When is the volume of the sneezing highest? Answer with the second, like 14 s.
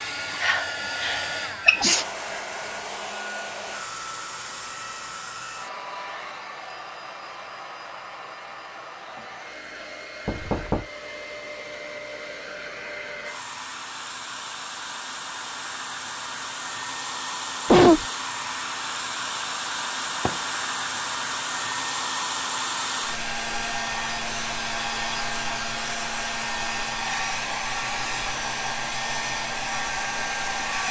18 s.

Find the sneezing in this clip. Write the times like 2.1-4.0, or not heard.
0.4-2.0, 17.6-18.1.